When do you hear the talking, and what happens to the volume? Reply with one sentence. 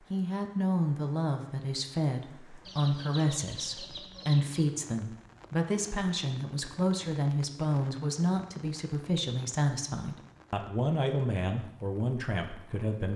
You can hear the talking from 0.1 to 13.1 s, at a steady volume.